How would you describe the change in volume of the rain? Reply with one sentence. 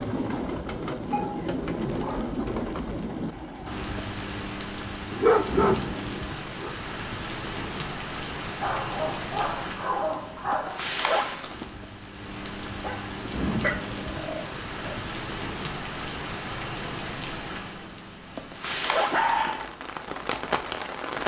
The volume of the rain stays about the same.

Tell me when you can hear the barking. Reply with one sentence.
The barking can be heard from 1.1 to 2.4 s, from 5.1 to 6.7 s, from 8.6 to 10.8 s, from 12.8 to 15.0 s and from 18.9 to 19.8 s.